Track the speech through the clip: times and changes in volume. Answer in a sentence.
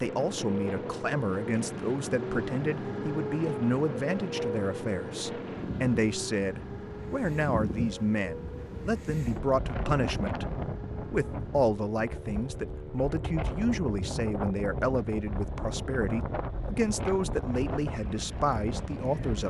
The speech can be heard from 0.0 to 19.4 s, at a steady volume.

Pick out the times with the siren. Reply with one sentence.
You can't hear the siren here.